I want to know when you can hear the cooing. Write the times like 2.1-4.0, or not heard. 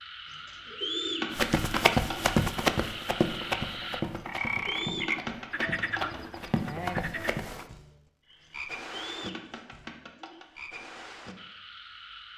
0.2-2.4, 4.2-6.2, 8.4-10.4.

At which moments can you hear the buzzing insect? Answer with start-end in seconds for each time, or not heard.
not heard.